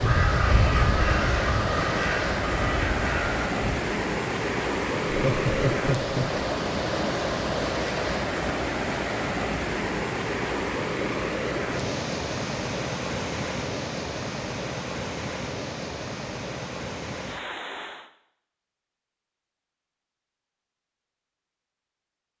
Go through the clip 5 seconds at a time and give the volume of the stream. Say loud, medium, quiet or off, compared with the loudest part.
loud, loud, loud, medium, off.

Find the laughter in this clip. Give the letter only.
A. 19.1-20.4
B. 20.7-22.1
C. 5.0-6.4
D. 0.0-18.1
C.